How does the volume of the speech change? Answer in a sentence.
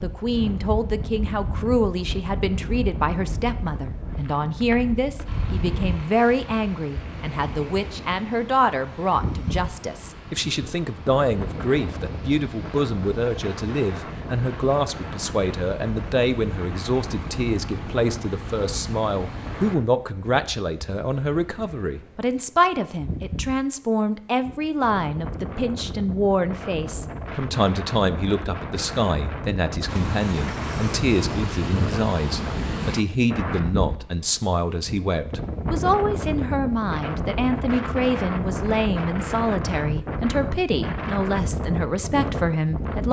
The volume of the speech stays about the same.